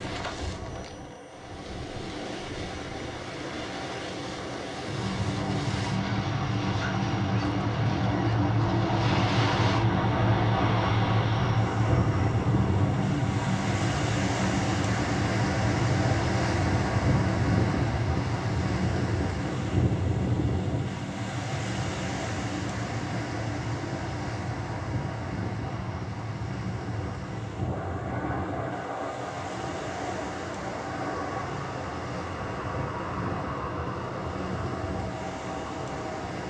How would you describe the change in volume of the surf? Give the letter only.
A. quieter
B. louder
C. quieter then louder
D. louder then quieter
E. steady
D.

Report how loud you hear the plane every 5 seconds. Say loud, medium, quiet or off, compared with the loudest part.
quiet, loud, loud, medium, medium, medium, medium, medium.